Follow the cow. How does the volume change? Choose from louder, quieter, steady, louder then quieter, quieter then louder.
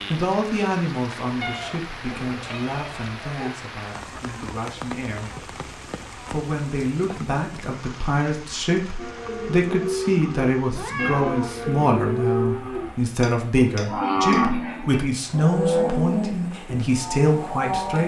louder then quieter.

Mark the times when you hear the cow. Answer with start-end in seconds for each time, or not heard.
8.9-18.0.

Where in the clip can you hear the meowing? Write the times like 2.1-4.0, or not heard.
1.4-3.5, 10.8-11.6.